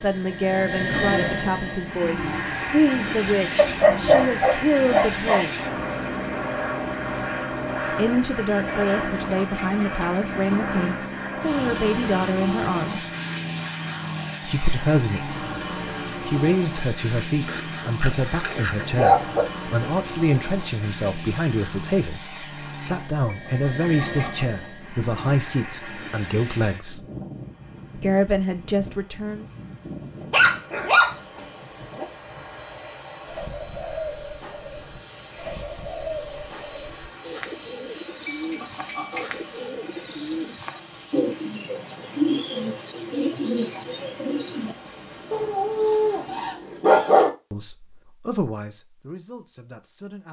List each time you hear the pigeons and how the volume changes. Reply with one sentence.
You can hear the pigeons from 33.2 to 44.8 s, getting louder.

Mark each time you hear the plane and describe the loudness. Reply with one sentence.
The plane can be heard from 0.0 to 46.8 s, getting quieter.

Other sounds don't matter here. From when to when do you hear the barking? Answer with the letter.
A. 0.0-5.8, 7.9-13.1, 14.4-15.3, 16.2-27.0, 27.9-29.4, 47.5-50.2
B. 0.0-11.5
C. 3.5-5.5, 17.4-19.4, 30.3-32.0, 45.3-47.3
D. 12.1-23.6
C.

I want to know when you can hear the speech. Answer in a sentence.
The speech can be heard from 0.0 to 5.8 s, from 7.9 to 13.1 s, from 14.4 to 15.3 s, from 16.2 to 27.0 s, from 27.9 to 29.4 s and from 47.5 to 50.2 s.